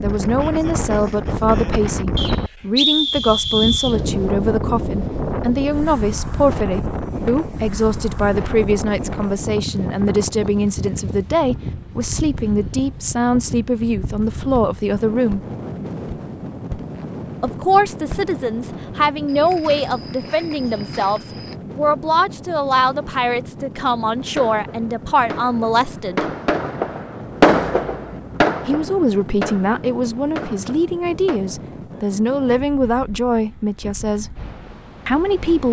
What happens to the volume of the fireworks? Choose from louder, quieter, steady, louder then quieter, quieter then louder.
louder then quieter.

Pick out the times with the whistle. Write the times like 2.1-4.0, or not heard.
2.1-4.0.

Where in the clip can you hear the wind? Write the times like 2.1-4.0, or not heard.
0.0-35.6.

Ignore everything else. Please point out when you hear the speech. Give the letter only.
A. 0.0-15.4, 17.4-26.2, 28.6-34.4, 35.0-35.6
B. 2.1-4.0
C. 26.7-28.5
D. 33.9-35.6
A.